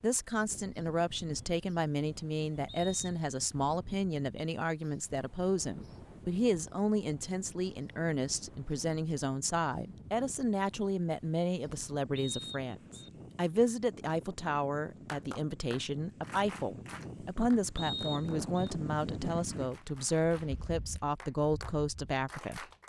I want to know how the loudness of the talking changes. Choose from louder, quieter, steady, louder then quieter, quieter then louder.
steady.